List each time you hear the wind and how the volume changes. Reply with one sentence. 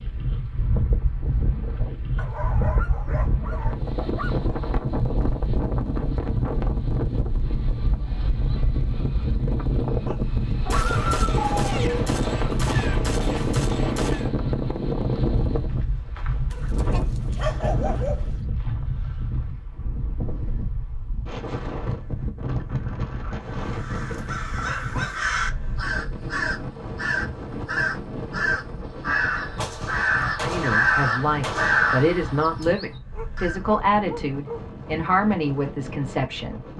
You can hear the wind from 0.0 to 36.7 s, getting quieter.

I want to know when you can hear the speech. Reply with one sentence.
You can hear the speech from 30.4 to 36.6 s.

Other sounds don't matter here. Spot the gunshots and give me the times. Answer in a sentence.
You can hear the gunshots from 10.7 to 14.3 s and from 29.6 to 32.8 s.